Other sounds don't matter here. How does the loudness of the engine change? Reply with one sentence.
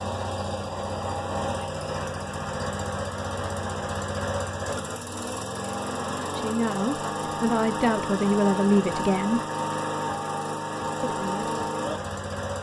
The volume of the engine stays about the same.